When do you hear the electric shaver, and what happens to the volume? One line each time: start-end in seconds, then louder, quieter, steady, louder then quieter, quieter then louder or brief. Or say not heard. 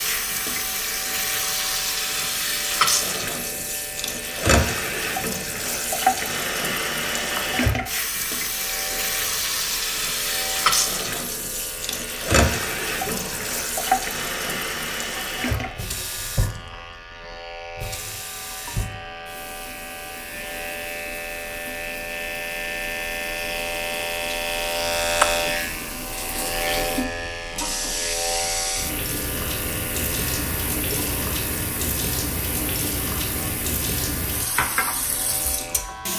0.0-36.1 louder then quieter.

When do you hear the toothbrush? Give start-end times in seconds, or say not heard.
not heard.